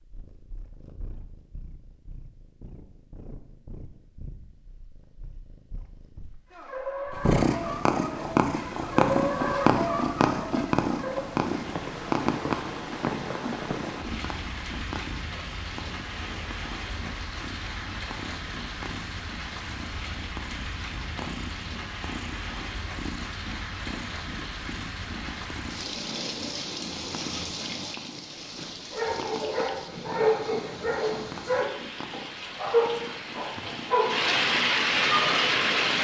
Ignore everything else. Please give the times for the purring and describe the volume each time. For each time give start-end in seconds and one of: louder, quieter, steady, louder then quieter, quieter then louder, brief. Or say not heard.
0.0-35.9 louder then quieter.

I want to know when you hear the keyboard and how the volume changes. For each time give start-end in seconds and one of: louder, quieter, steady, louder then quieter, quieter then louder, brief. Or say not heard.
not heard.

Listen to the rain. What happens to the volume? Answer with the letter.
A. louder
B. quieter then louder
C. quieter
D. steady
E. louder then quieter
A.